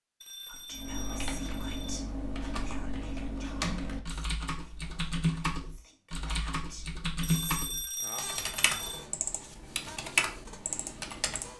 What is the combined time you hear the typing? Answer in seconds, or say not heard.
11 s.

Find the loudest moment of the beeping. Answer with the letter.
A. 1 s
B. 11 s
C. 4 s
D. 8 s
D.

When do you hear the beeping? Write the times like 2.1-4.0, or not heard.
0.2-2.0, 7.2-9.1.